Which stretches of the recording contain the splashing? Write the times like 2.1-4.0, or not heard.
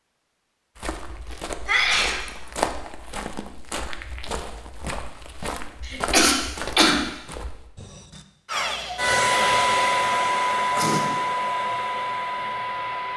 not heard.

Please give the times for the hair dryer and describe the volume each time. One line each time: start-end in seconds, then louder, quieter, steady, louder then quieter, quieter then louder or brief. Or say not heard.
8.5-13.1 quieter.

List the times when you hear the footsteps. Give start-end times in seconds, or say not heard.
0.8-8.2.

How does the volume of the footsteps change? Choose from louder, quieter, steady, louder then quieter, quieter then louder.
louder then quieter.